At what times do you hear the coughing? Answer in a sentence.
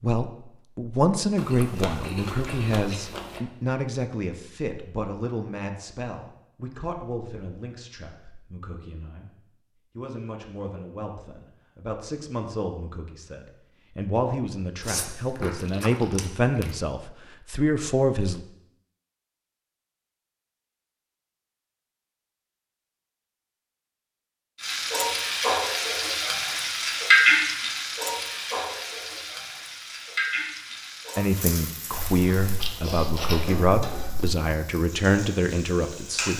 The coughing can't be heard in this clip.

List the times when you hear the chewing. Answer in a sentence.
You can hear the chewing from 1.4 to 3.4 s, from 14.8 to 16.7 s and from 31.9 to 34.4 s.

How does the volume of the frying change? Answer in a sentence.
The loudness of the frying goes down.